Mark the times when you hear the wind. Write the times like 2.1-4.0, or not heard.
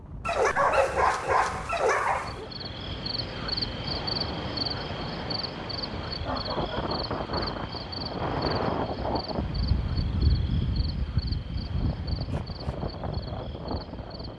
0.0-14.3.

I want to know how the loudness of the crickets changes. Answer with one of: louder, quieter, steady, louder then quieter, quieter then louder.
quieter.